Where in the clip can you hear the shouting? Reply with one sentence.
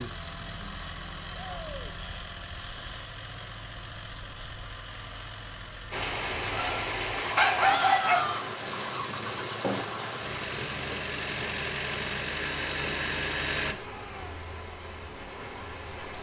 You can hear the shouting from 1.4 to 1.9 s, from 7.6 to 8.4 s and from 13.8 to 14.3 s.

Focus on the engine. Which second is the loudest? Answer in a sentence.
The loudest moment of the engine is at 13 seconds.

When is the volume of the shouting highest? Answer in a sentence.
The loudest moment of the shouting is at 8 seconds.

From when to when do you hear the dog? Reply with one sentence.
You can hear the dog from 6.5 to 8.3 s.